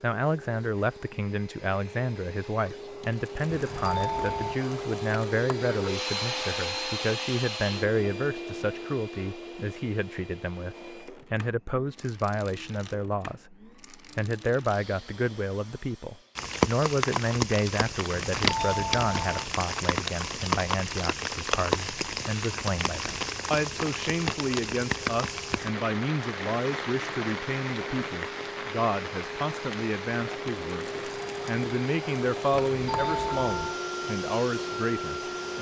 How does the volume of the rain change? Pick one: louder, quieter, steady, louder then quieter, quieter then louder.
quieter.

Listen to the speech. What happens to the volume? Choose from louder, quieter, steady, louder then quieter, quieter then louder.
steady.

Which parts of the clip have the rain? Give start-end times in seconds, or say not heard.
16.4-35.5.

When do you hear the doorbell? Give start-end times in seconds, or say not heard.
3.5-4.5, 18.4-19.4, 32.8-33.8.